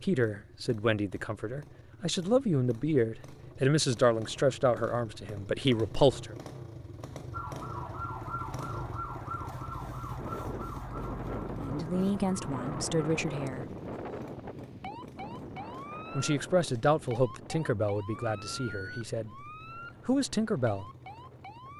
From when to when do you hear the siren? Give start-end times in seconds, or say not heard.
7.3-21.7.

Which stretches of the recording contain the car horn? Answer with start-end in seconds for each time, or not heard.
not heard.